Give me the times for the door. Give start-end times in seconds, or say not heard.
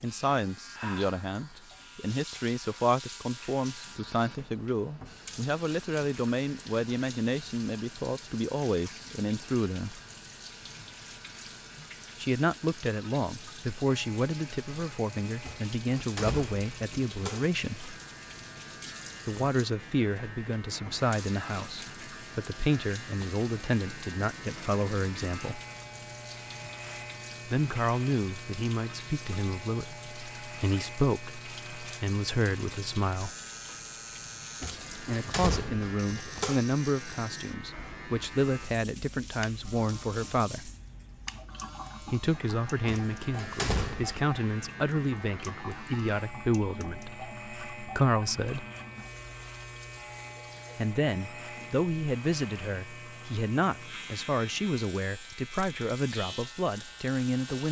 15.4-17.6, 34.6-36.6, 42.9-44.2.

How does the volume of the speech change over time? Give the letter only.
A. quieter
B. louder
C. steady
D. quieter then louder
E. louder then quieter
C.